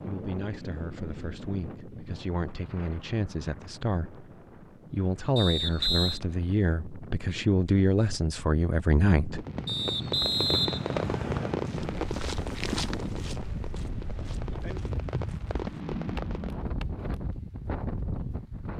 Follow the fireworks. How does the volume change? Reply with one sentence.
The loudness of the fireworks goes down, then up.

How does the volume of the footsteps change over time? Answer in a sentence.
The volume of the footsteps goes down, then up.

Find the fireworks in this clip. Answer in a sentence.
You can hear the fireworks from 9.3 to 16.6 s.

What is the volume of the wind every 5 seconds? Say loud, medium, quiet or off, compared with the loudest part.
medium, medium, loud, loud.